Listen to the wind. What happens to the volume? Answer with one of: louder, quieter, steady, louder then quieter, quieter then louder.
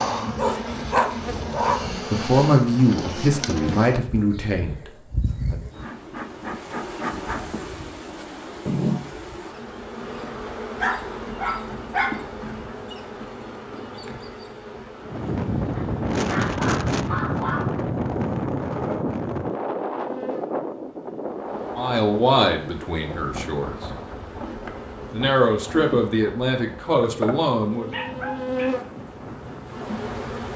quieter.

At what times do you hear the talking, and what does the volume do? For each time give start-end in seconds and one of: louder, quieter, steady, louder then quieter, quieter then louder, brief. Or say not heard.
1.4-5.6 quieter
21.8-23.9 brief
25.1-27.9 brief.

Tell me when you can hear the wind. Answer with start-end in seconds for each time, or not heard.
15.1-30.5.